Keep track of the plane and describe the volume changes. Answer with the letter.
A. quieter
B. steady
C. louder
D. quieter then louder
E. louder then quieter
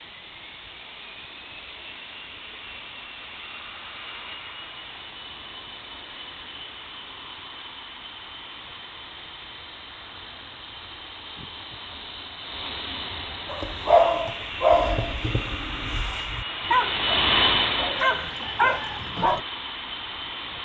C.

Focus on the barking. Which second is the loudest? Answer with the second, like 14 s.
14 s.